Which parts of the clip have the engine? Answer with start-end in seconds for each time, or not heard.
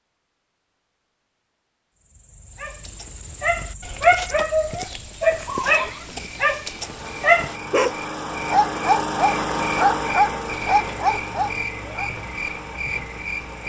6.5-13.6.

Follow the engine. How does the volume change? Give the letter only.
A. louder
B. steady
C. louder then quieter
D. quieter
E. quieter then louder
C.